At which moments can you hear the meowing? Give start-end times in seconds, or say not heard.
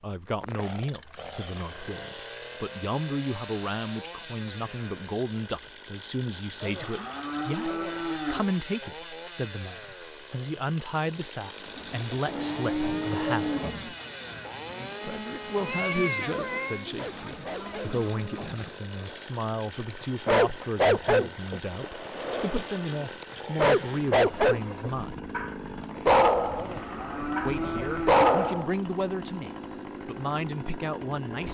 15.6-16.9.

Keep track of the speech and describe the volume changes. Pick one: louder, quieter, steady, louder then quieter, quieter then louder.
steady.